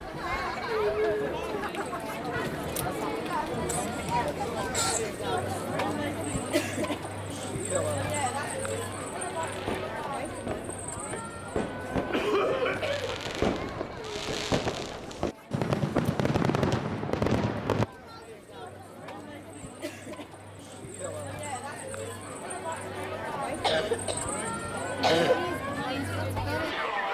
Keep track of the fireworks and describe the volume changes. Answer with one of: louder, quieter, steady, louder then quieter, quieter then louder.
louder.